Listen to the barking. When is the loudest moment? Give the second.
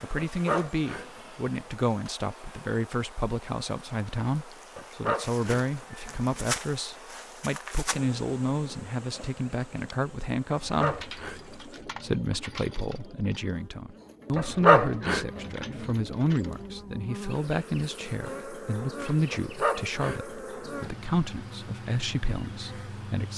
15 s.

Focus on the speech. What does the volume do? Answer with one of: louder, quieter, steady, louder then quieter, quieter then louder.
steady.